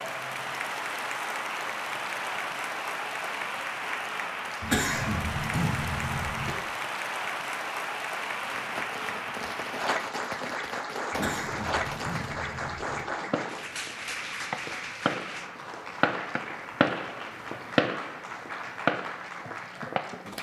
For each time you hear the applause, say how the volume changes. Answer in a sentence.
The applause can be heard from 0.0 to 20.3 s, getting quieter.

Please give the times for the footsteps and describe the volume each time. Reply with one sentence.
You can't hear the footsteps here.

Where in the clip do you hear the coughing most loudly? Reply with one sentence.
The volume of the coughing peaks at 5 seconds.